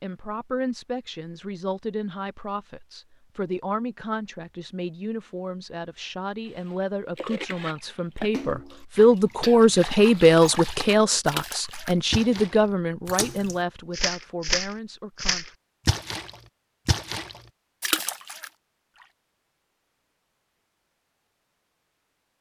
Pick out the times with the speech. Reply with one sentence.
You can hear the speech from 0.0 to 15.4 s.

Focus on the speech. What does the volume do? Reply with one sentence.
The loudness of the speech goes up, then down.